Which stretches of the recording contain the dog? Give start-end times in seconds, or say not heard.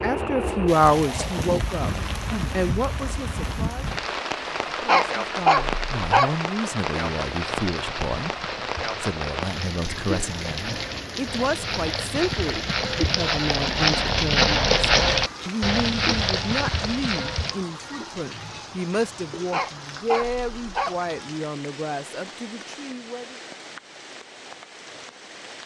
4.8-6.3, 19.5-20.9.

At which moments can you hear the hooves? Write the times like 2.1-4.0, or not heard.
6.7-17.6.